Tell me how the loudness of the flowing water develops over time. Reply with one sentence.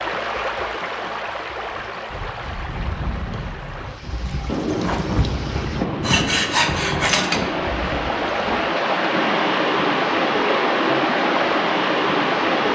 The volume of the flowing water goes down, then up.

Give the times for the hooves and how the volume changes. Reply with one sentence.
The hooves can be heard from 1.7 to 8.6 s, getting louder then quieter.